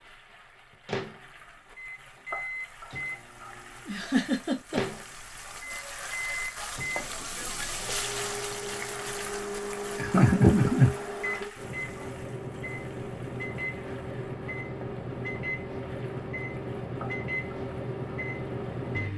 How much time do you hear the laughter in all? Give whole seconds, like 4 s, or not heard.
2 s.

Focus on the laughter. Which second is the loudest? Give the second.
10 s.